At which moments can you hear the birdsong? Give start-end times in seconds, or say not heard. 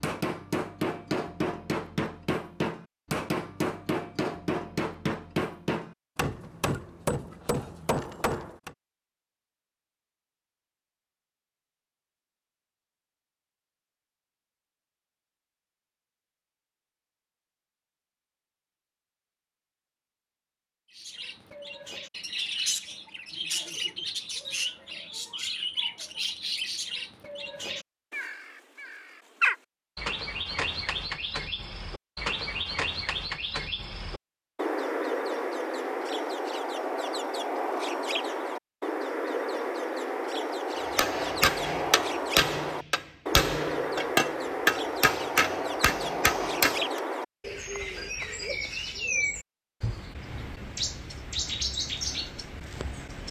20.9-53.2.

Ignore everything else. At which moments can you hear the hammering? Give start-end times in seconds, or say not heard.
0.0-8.8, 40.8-47.0.